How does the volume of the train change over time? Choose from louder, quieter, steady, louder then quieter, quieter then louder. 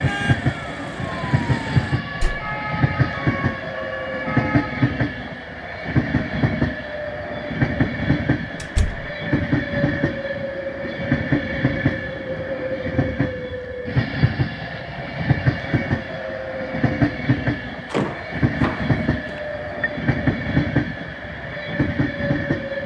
steady.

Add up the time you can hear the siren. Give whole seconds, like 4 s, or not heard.
5 s.